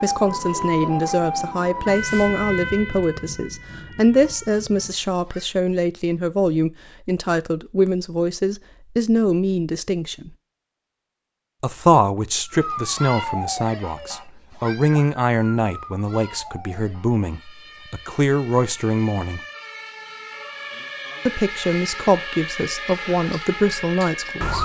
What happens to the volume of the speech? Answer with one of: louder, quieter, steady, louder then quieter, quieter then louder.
steady.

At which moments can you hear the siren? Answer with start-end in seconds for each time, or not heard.
0.0-5.5, 12.4-24.5.